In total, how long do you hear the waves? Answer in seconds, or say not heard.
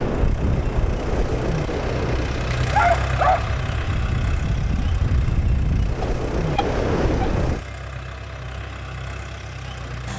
8 s.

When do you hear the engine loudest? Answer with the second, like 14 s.
3 s.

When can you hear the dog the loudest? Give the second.
3 s.